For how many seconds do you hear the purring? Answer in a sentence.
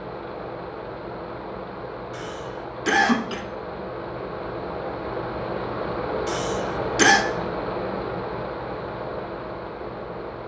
You can't hear the purring here.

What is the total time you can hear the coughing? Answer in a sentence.
You can hear the coughing for 2 seconds altogether.